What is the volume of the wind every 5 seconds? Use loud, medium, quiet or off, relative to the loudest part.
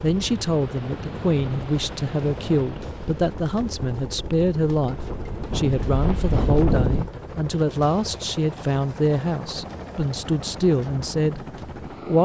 quiet, loud, off.